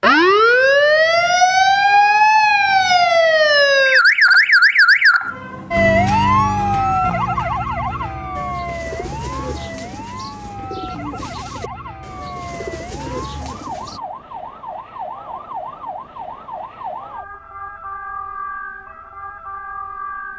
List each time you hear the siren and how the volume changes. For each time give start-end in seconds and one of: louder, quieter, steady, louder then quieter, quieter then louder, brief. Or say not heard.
0.0-20.3 quieter.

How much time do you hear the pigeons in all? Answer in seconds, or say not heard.
6 s.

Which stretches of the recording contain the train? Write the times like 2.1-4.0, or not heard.
not heard.